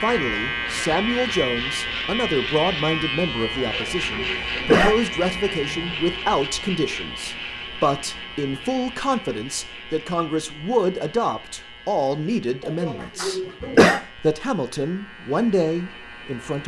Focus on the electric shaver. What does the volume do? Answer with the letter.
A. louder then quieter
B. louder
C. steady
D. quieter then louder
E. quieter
E.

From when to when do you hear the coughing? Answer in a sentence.
You can hear the coughing from 3.6 to 5.0 s and from 12.7 to 14.0 s.